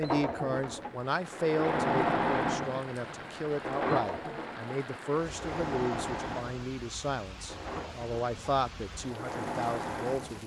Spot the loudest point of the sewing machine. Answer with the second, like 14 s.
2 s.